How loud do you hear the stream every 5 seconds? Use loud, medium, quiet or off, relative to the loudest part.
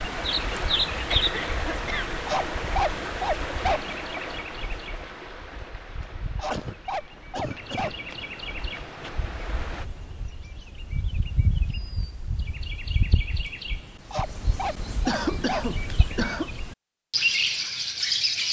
loud, medium, off, off.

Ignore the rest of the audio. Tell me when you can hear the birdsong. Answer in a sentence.
The birdsong can be heard from 0.0 to 18.4 s.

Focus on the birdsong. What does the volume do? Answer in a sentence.
The volume of the birdsong goes down, then up.